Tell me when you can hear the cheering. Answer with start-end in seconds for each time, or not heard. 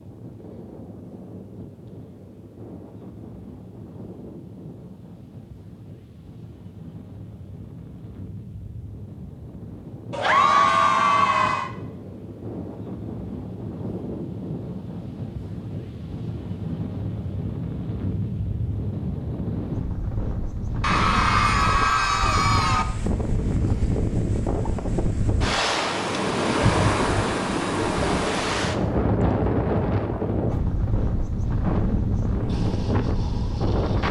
10.1-11.7, 20.8-22.9.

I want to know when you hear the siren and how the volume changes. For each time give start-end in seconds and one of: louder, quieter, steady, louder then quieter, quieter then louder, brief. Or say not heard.
not heard.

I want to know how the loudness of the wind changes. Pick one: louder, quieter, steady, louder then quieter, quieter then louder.
louder.